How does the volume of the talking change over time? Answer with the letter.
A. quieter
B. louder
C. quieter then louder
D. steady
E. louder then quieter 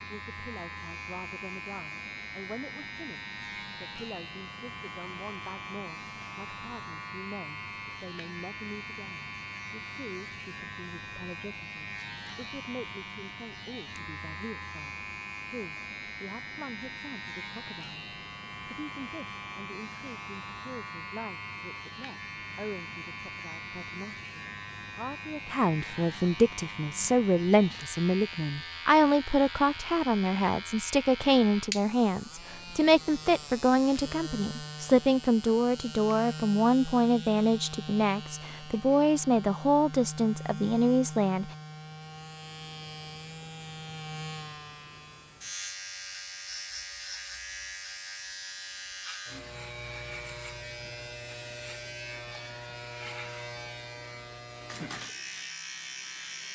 B.